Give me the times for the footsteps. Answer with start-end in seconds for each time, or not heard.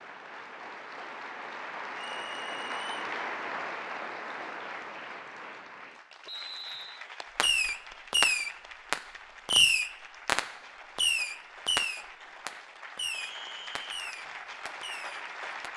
not heard.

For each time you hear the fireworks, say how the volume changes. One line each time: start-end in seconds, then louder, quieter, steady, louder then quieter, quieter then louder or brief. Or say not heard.
7.3-15.7 quieter.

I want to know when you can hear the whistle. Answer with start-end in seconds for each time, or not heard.
1.9-3.1, 6.2-7.0, 13.1-13.8.